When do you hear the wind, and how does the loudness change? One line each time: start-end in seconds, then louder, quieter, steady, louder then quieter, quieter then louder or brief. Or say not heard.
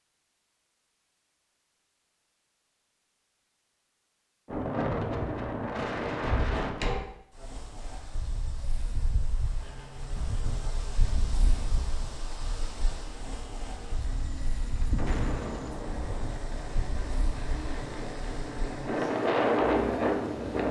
4.5-20.6 quieter then louder.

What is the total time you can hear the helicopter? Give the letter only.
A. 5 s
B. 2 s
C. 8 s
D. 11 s
D.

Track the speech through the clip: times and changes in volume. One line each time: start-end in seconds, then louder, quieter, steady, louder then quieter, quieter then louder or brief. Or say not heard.
not heard.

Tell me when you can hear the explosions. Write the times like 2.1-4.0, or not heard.
14.9-16.3.